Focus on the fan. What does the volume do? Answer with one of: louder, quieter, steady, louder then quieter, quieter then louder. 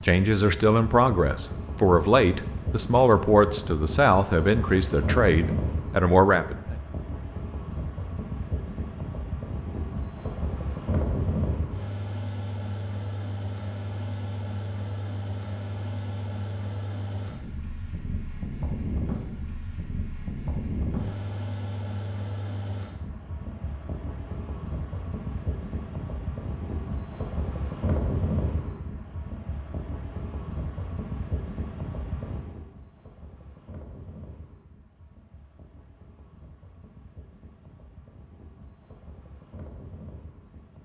quieter.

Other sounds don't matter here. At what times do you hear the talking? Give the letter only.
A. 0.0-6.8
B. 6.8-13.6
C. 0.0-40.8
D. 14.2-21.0
A.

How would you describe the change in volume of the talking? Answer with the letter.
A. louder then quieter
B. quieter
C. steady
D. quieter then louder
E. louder
C.